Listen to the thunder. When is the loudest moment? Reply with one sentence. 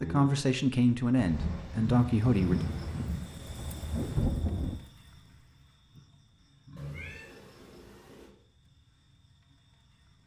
The loudest moment of the thunder is at 4 seconds.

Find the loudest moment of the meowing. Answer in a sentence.
The volume of the meowing peaks at 3 seconds.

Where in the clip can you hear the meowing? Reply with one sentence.
You can hear the meowing from 2.4 to 3.1 s and from 6.8 to 8.3 s.